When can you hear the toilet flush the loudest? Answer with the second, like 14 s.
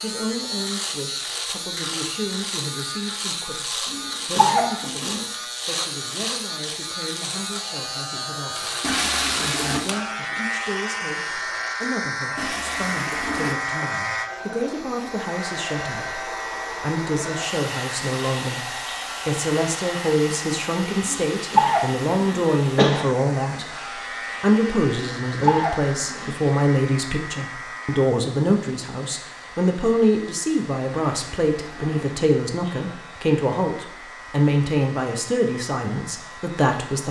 9 s.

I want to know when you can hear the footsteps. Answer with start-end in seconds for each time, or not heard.
not heard.